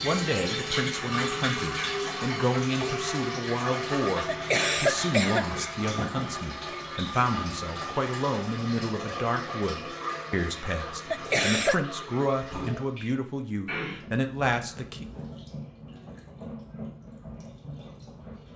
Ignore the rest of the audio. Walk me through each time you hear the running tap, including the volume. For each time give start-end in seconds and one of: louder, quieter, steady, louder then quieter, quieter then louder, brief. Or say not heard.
0.0-18.5 quieter.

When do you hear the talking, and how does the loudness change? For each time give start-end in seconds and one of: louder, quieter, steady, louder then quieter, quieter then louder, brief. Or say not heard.
0.0-15.1 steady.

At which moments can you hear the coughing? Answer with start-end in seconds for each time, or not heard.
4.2-5.5, 11.1-11.8.